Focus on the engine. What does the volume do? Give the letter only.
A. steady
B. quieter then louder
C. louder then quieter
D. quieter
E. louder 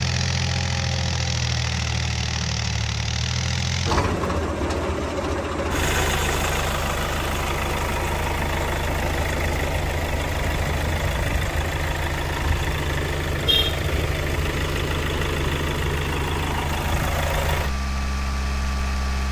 A.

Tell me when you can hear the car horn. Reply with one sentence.
The car horn can be heard from 13.4 to 14.2 s.